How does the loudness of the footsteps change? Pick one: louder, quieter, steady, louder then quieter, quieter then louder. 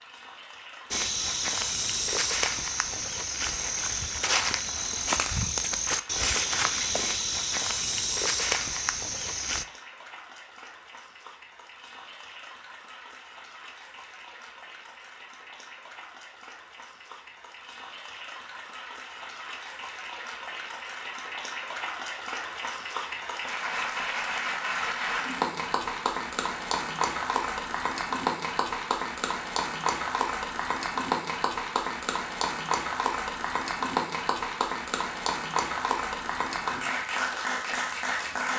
steady.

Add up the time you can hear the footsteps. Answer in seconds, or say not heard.
9 s.